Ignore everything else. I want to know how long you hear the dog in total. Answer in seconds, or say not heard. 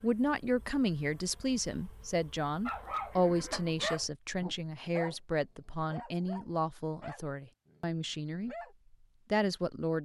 6 s.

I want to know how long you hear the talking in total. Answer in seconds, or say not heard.
9 s.